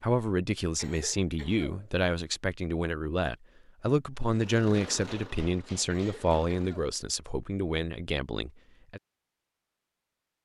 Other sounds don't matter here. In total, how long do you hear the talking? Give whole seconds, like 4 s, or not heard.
9 s.